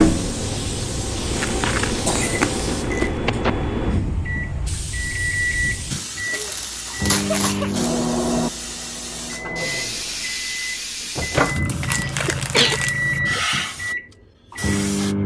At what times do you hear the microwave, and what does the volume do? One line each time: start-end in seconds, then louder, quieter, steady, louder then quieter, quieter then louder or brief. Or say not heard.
0.0-15.2 steady.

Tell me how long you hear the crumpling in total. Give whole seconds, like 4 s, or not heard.
5 s.